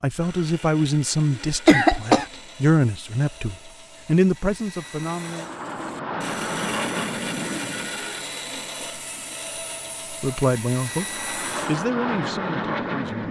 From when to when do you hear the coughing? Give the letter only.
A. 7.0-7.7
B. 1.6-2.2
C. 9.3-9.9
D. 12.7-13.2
B.